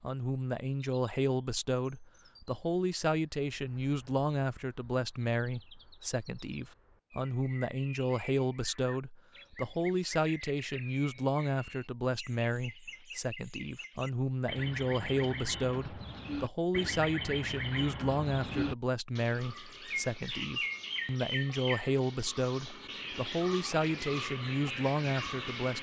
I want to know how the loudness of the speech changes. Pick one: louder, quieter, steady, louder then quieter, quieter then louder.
steady.